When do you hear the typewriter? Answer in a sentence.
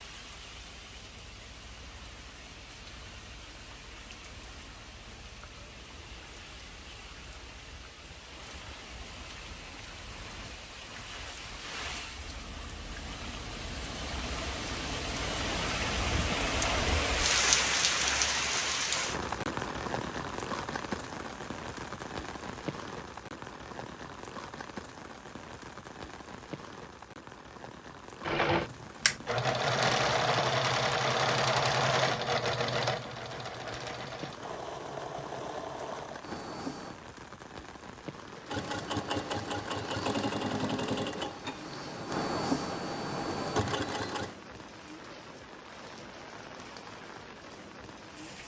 You can't hear the typewriter here.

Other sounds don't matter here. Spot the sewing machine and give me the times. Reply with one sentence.
The sewing machine can be heard from 28.2 to 37.0 s and from 38.5 to 44.4 s.